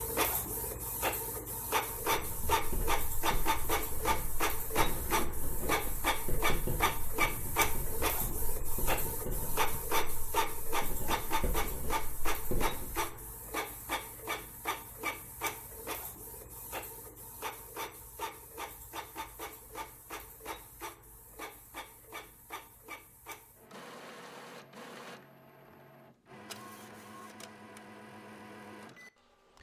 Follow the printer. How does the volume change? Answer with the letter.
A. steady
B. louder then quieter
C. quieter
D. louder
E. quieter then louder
C.